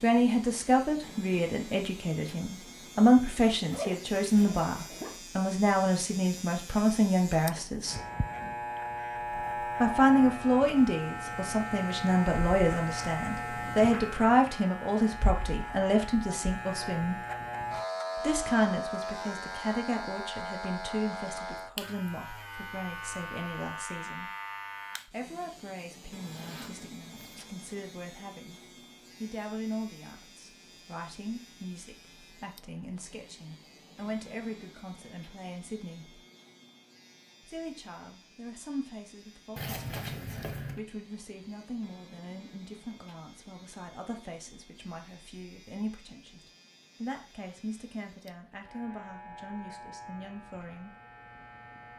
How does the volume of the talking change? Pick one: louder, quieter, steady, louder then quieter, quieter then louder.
quieter.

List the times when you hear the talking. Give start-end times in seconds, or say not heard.
0.0-8.0, 9.8-17.2, 18.2-24.3, 25.1-28.6, 29.2-36.2, 37.5-51.0.